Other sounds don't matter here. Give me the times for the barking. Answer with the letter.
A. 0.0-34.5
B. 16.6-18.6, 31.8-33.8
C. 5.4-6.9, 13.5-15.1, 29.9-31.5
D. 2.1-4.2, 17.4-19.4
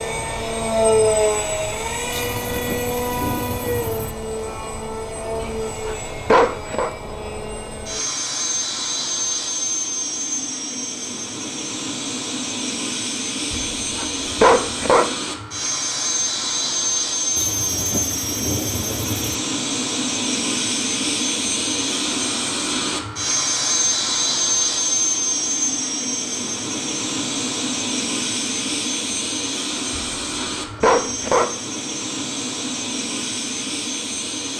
C.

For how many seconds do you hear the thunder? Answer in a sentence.
The thunder can be heard for 4 seconds in total.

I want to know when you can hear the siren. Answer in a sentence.
You can't hear the siren here.